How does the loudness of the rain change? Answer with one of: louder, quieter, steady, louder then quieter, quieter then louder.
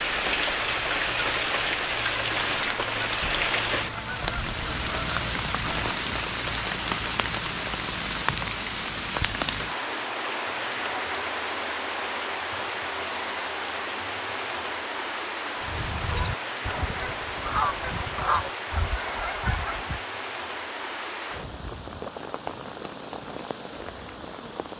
quieter.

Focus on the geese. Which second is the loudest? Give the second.
18 s.